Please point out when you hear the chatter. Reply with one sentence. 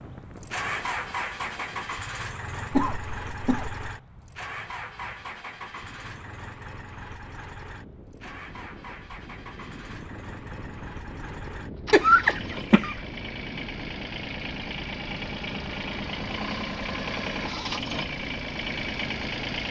The chatter can't be heard in this clip.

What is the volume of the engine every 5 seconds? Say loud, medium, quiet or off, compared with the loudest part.
loud, medium, medium, loud.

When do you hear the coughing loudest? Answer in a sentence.
The loudest moment of the coughing is at 12 seconds.